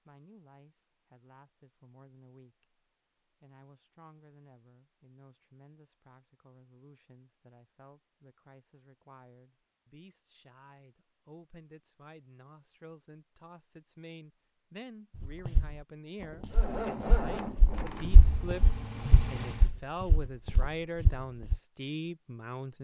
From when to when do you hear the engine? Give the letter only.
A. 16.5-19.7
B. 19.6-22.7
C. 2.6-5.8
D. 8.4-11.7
A.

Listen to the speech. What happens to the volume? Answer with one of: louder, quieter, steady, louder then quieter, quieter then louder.
louder.